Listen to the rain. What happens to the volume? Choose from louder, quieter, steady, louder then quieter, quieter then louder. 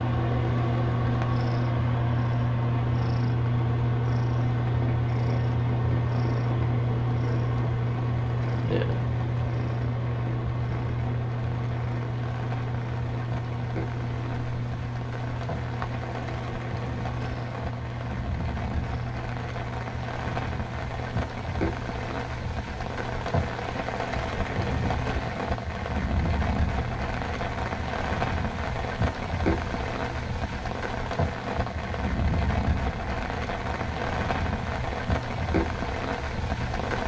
louder.